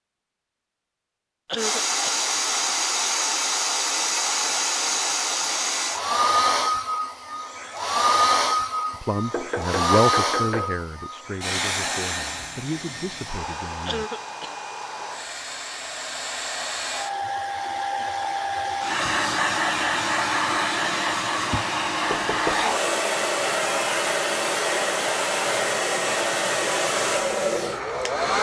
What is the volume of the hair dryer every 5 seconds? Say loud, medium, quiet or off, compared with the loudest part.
loud, loud, medium, loud, loud, loud.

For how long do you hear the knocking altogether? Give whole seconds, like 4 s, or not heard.
2 s.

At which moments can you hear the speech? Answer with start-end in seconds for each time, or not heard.
8.9-14.1.